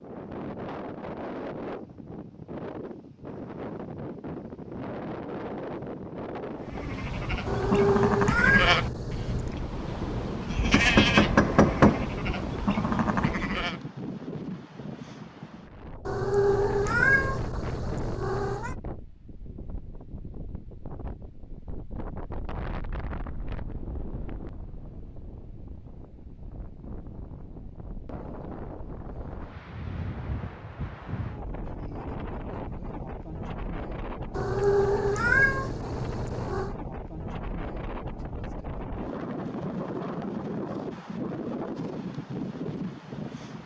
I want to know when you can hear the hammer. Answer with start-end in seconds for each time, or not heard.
10.7-12.1.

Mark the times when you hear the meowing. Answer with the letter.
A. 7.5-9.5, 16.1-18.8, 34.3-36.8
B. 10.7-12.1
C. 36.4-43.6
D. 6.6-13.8
A.